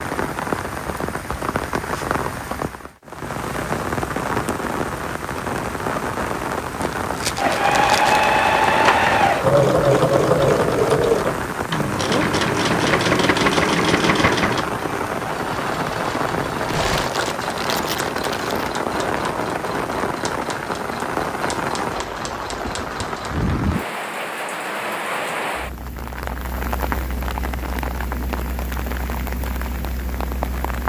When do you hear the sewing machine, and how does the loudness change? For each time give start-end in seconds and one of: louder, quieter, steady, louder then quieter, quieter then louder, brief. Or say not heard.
7.3-23.5 quieter.